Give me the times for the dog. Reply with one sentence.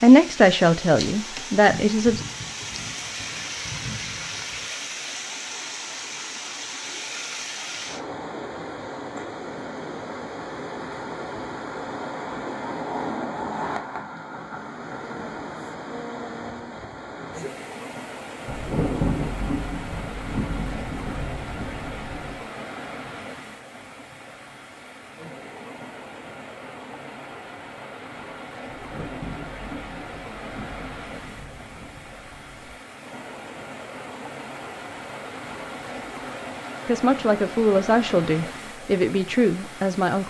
You can't hear the dog here.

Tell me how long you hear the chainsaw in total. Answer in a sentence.
The chainsaw can't be heard in this clip.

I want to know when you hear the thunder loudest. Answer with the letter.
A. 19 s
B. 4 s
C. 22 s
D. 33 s
A.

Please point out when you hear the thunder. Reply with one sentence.
You can hear the thunder from 1.7 to 4.7 s, from 18.4 to 22.4 s and from 28.6 to 32.8 s.